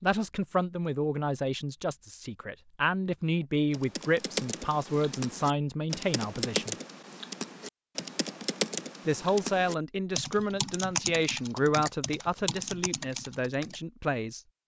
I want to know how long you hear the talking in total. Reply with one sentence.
The talking can be heard for 12 seconds in total.